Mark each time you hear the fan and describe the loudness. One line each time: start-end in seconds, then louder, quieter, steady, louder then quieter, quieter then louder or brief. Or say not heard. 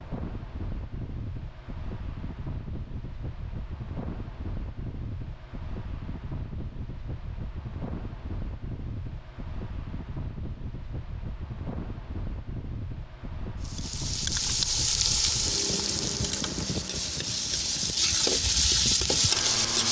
0.0-19.8 steady.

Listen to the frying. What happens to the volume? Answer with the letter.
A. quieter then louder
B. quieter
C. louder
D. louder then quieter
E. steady
A.